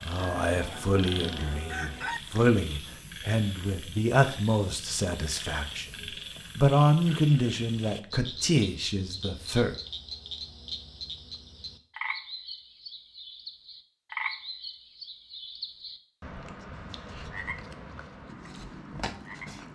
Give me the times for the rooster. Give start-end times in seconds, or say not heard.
0.1-2.2.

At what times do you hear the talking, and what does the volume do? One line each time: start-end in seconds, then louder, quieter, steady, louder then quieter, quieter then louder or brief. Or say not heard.
0.0-9.8 louder then quieter.